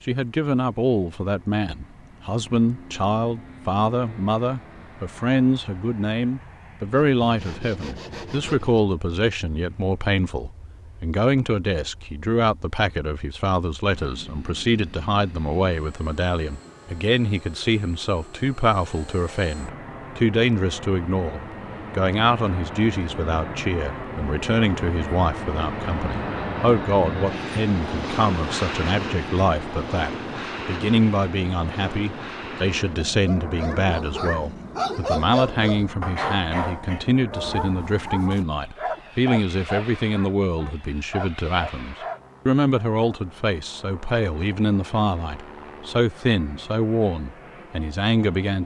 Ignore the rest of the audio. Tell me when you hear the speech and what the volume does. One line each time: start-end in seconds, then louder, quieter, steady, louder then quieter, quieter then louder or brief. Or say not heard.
0.1-48.6 steady.